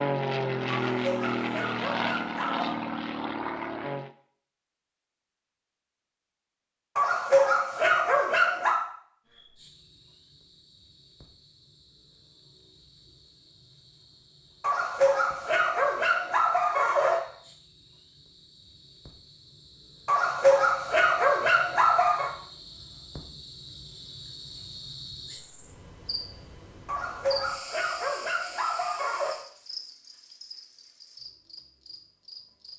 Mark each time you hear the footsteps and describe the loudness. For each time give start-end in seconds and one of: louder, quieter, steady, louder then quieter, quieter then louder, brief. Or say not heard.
not heard.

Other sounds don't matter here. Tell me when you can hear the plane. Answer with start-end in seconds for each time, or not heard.
0.0-4.1.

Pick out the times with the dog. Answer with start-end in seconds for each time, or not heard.
0.7-2.8, 7.0-8.8, 14.6-17.2, 20.1-22.3, 26.9-29.4.